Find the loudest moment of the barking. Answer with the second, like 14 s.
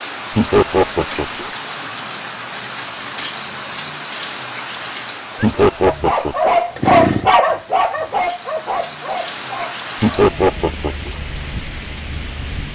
7 s.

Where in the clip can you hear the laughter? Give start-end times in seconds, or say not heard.
0.3-1.4, 5.4-6.5, 10.0-11.1.